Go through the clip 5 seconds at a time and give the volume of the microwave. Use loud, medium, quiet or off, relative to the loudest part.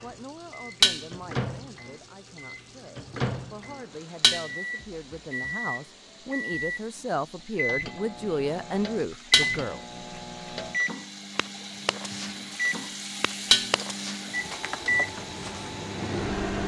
medium, loud, loud, loud.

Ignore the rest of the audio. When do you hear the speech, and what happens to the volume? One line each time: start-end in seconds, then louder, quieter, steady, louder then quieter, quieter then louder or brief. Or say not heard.
0.0-9.8 louder.